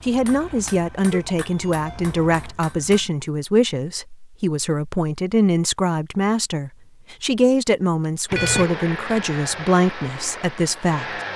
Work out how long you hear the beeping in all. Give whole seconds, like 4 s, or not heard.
2 s.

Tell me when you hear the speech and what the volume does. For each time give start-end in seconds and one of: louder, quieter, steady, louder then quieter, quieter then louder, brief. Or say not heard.
0.0-11.2 steady.